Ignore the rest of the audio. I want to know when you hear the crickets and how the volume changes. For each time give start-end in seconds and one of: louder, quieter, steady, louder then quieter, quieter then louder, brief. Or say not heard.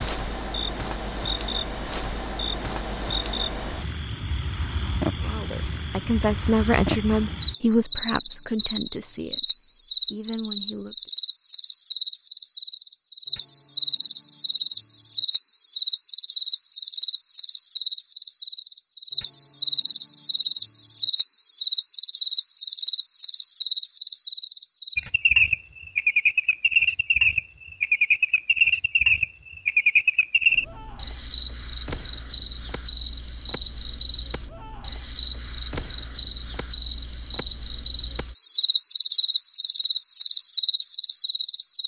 0.0-41.8 louder.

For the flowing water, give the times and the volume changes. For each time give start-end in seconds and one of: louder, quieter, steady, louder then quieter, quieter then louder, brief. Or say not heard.
not heard.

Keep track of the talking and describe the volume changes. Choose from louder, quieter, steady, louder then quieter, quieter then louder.
quieter.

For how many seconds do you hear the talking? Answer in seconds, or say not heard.
6 s.